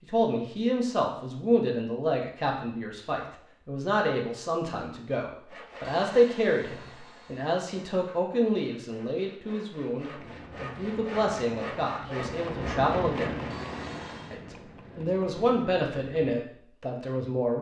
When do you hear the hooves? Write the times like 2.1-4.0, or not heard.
10.2-16.4.